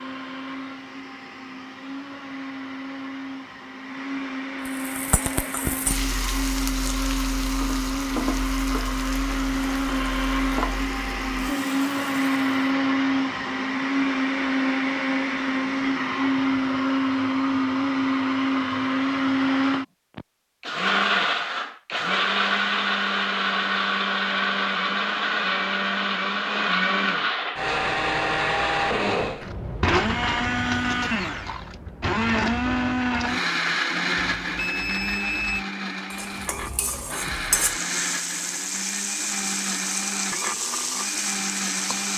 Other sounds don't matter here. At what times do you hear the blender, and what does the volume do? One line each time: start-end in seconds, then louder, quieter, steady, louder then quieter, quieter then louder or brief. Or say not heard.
0.0-42.1 louder then quieter.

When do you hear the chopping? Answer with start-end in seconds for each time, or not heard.
not heard.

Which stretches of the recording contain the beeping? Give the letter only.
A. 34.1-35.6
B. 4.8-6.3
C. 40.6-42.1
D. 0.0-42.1
A.